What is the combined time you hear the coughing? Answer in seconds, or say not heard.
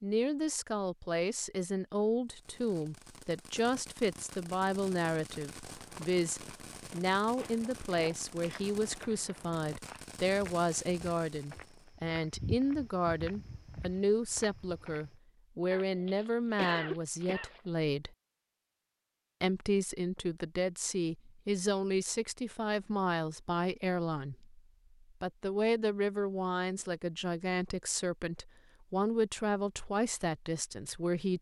2 s.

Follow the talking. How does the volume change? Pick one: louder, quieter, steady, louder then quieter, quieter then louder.
steady.